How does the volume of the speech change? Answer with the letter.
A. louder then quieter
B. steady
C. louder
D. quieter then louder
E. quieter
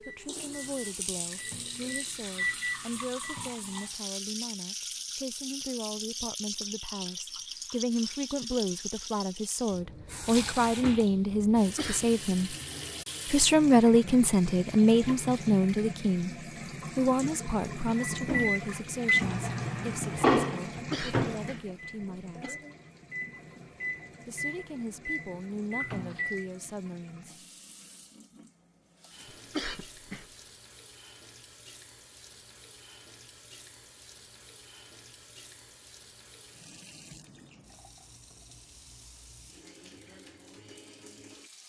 A.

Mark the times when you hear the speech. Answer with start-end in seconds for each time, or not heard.
0.1-12.6, 13.2-22.6, 24.2-27.4.